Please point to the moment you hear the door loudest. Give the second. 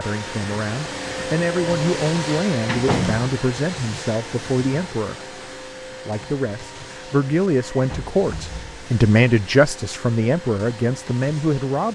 3 s.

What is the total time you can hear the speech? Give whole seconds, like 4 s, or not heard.
12 s.